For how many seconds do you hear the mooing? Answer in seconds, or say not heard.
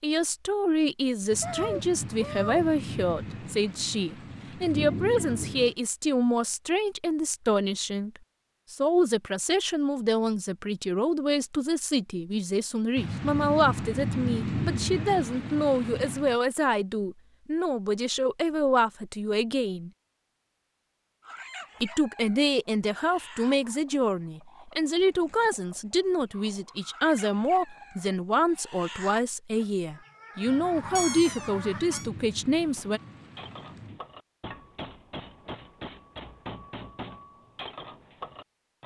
not heard.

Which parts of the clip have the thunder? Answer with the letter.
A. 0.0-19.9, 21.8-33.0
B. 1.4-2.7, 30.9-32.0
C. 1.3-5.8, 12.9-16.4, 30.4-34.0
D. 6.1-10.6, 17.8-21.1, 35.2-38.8
C.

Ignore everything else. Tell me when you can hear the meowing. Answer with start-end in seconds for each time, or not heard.
1.4-2.7, 30.9-32.0.